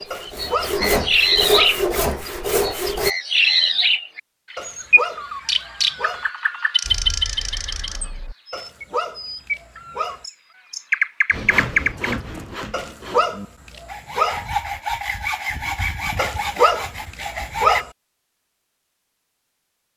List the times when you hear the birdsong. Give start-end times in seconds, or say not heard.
0.0-12.2.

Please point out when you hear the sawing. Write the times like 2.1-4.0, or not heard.
0.0-3.1, 11.3-17.9.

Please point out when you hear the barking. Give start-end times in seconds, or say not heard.
0.1-1.8, 4.5-6.2, 8.5-10.2, 12.7-14.4, 16.1-17.9.